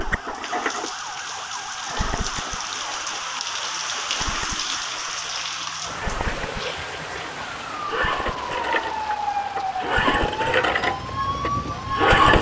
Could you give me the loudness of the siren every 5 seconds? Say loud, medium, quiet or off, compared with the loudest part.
medium, loud, loud.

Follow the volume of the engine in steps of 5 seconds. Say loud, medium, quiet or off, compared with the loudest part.
quiet, medium, loud.